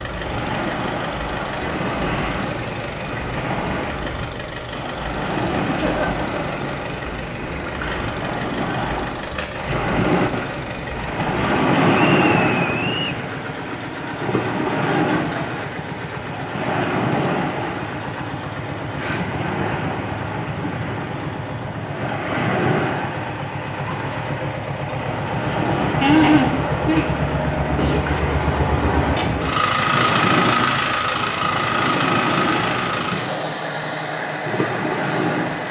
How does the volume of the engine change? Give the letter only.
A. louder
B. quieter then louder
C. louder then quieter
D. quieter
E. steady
A.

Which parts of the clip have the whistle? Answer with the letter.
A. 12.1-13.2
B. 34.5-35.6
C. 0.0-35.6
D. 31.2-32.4
A.